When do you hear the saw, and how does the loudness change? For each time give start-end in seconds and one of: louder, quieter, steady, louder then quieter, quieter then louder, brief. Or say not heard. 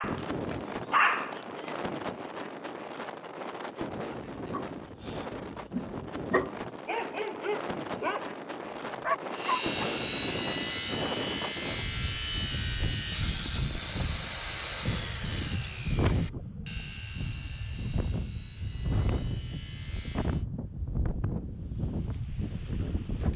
9.3-20.4 quieter.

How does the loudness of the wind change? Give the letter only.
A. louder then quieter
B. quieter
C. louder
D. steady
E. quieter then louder
D.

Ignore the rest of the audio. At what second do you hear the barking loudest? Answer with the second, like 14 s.
1 s.